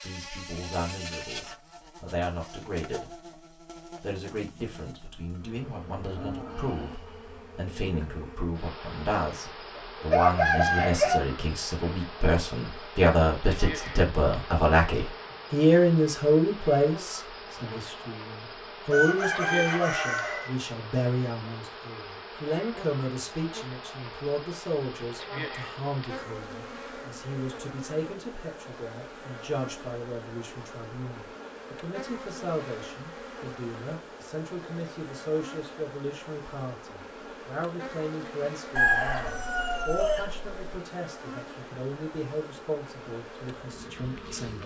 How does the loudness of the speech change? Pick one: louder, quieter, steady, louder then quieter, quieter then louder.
louder then quieter.